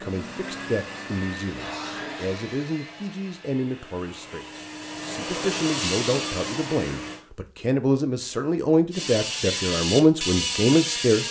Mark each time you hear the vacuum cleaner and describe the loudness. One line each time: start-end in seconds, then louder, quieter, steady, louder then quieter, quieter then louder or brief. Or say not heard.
0.0-7.2 quieter then louder.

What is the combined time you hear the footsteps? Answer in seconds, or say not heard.
not heard.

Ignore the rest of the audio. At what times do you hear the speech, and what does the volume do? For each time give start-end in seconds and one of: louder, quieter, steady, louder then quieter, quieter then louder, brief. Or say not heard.
0.0-11.2 louder.